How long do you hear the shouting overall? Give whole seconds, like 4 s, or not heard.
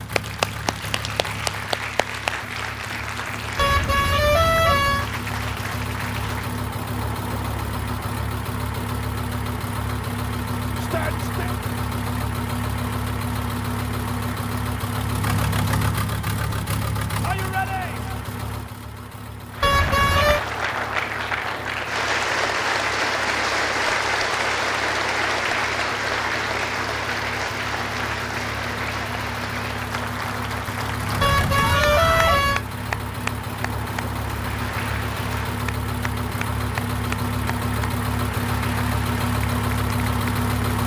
3 s.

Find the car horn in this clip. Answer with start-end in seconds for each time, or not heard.
3.5-5.1, 19.6-20.4, 31.2-32.6.